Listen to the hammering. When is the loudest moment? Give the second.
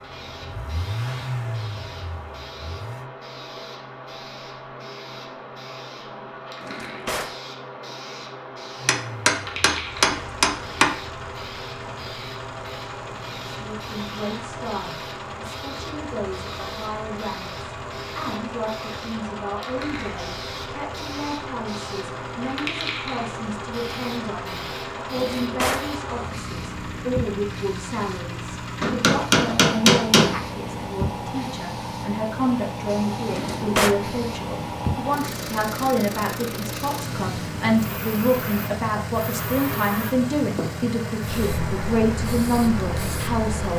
30 s.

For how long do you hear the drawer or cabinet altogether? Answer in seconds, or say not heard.
2 s.